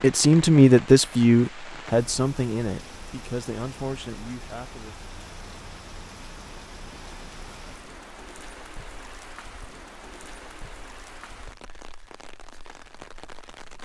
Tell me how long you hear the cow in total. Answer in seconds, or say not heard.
not heard.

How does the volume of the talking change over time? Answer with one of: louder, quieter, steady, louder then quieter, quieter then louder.
quieter.